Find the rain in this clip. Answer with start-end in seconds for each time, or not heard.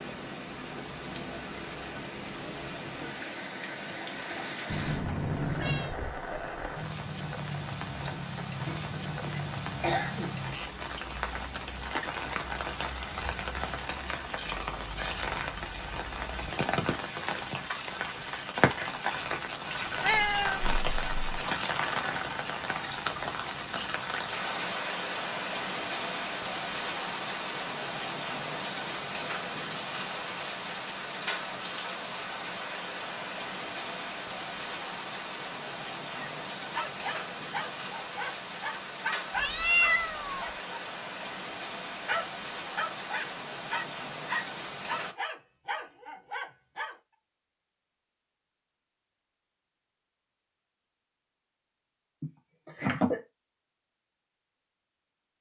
0.0-45.1.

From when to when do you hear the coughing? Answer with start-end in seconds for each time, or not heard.
8.7-10.3, 52.2-53.2.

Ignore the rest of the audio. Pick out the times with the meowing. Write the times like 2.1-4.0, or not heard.
4.7-6.0, 20.0-21.2, 39.4-40.5.